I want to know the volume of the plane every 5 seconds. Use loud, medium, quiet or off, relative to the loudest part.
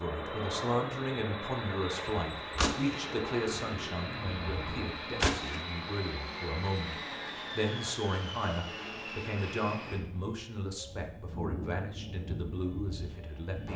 loud, loud, medium.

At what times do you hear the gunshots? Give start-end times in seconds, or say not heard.
2.0-5.7.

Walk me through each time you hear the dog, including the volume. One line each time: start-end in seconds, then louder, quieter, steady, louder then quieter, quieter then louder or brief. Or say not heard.
not heard.